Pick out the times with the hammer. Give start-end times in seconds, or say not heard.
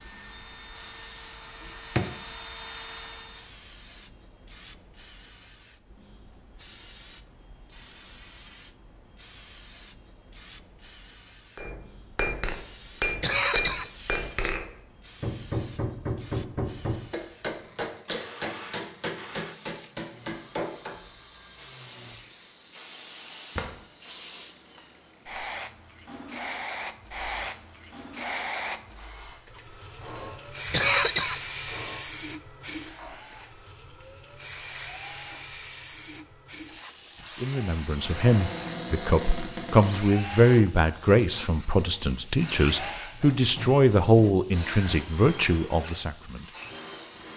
11.6-20.9.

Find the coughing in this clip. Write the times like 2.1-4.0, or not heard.
13.2-14.3, 30.6-31.6.